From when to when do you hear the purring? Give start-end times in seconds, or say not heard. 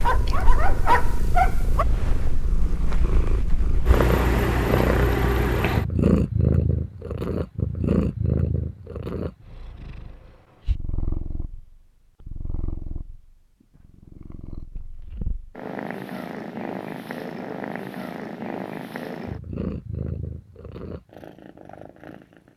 0.0-22.5.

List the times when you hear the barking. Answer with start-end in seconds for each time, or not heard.
0.0-1.9.